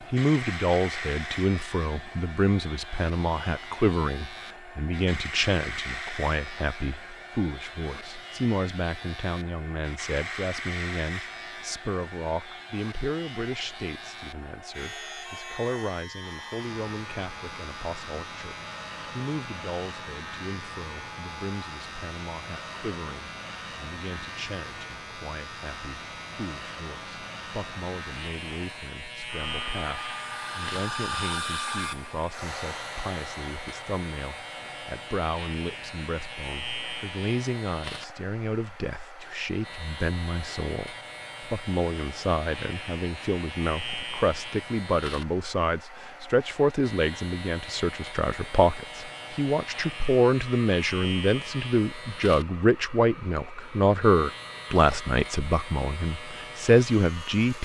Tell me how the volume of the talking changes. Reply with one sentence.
The loudness of the talking goes down, then up.